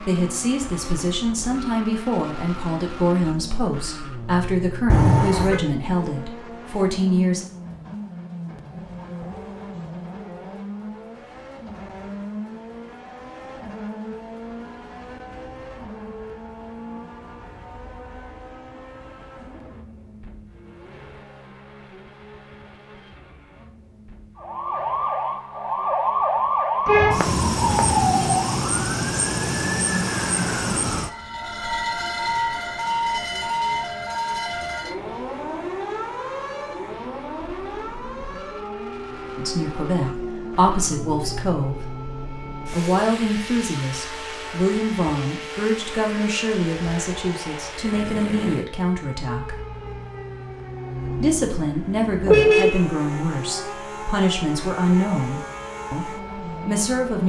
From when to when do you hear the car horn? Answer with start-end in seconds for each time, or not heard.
4.8-5.6, 26.9-28.1, 52.2-52.9.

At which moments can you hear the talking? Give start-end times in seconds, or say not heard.
0.0-7.5, 39.4-41.8, 42.7-49.5, 51.2-57.2.